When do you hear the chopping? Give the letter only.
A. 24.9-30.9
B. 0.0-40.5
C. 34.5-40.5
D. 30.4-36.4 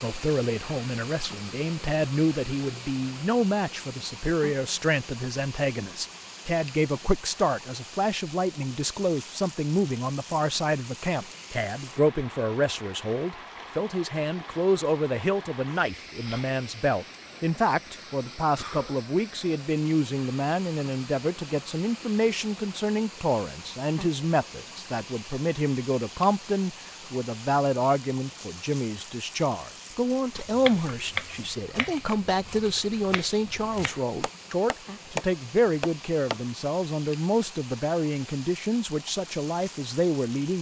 D.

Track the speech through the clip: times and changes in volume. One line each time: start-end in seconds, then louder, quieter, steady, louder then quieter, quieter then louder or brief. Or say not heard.
0.0-40.5 steady.